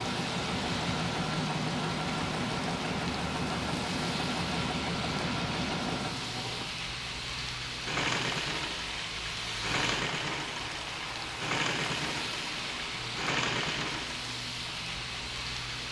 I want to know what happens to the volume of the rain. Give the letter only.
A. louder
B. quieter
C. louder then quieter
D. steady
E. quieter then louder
D.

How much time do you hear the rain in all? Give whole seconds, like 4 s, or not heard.
16 s.